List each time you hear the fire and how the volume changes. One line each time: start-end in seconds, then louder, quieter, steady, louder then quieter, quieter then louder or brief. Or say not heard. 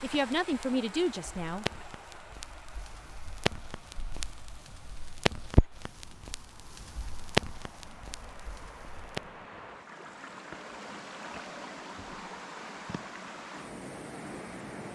0.0-9.4 louder.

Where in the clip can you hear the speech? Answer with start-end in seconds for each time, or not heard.
0.0-1.9.